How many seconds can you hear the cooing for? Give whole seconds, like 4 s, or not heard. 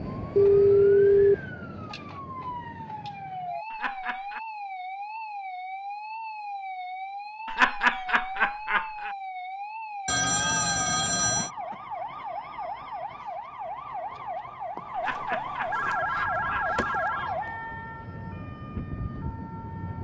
not heard.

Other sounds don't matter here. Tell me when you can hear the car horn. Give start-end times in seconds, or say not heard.
not heard.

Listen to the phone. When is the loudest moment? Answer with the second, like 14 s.
1 s.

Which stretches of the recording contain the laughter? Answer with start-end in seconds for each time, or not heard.
3.7-4.4, 7.5-9.2, 14.9-16.8.